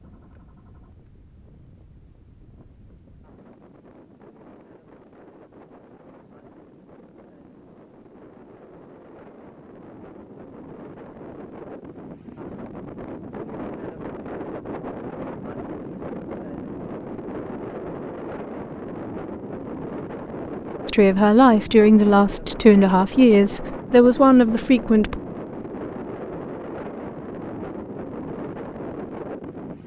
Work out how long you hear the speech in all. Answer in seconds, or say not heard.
4 s.